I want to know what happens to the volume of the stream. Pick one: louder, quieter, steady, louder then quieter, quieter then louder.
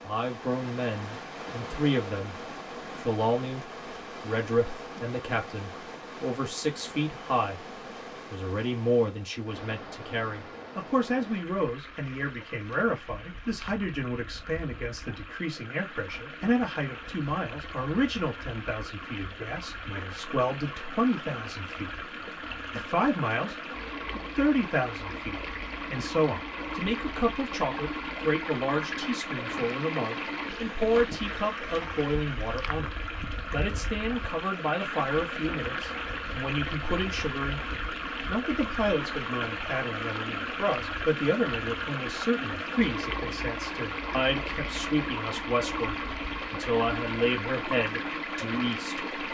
louder.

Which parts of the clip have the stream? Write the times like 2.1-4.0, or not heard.
0.0-49.2.